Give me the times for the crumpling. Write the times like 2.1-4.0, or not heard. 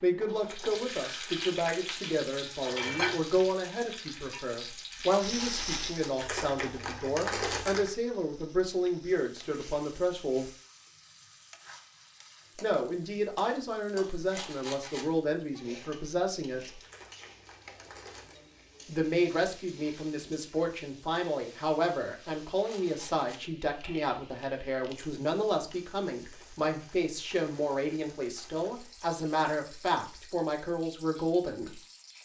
6.2-8.0, 16.8-18.4, 26.2-28.8.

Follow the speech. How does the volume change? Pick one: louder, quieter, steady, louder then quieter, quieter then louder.
steady.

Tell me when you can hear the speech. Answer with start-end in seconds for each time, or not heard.
0.0-10.5, 12.6-16.8, 18.9-31.8.